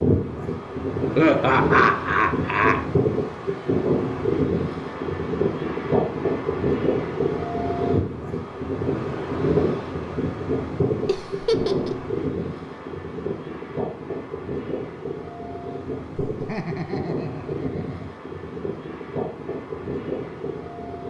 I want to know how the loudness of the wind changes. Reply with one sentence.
The loudness of the wind goes down.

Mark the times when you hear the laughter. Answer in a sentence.
You can hear the laughter from 1.1 to 2.9 s, from 11.1 to 12.0 s and from 16.2 to 18.1 s.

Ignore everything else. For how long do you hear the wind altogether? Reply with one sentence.
The wind can be heard for 21 seconds in total.